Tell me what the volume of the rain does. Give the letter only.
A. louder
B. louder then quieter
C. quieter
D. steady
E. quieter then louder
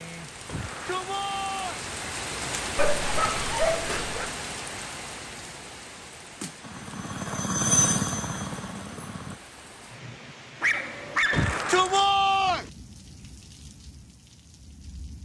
C.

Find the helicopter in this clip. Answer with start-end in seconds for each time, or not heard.
6.6-9.4.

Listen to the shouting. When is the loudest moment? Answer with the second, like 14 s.
12 s.